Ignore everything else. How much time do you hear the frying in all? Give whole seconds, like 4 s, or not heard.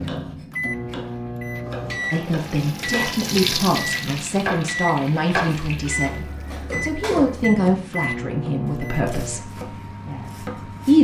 4 s.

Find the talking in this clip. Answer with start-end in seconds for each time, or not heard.
2.1-10.9.